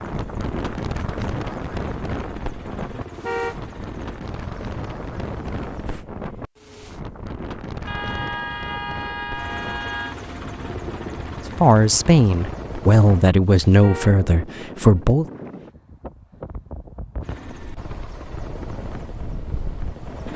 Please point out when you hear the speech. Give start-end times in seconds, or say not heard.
11.6-15.2.